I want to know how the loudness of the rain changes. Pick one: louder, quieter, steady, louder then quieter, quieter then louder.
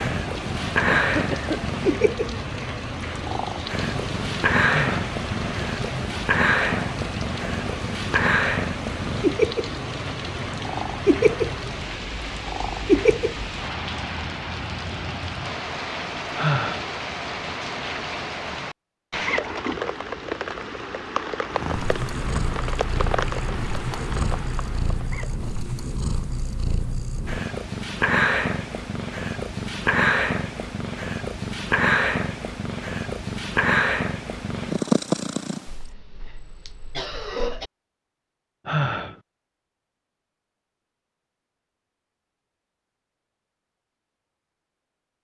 steady.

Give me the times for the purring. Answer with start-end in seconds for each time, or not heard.
0.0-13.4, 21.5-35.7.